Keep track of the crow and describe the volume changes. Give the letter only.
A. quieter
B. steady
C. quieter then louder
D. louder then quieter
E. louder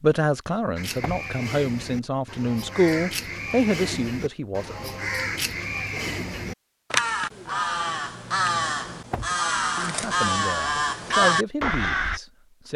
E.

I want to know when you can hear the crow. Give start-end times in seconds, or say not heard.
0.8-12.2.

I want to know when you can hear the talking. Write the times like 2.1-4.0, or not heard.
0.0-5.0, 9.8-12.7.